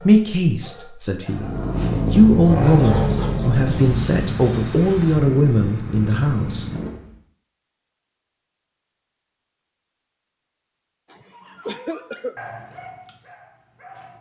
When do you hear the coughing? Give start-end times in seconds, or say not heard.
11.1-12.3.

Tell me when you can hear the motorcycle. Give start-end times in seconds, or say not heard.
1.2-7.2.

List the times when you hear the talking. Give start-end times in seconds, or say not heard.
0.1-6.7.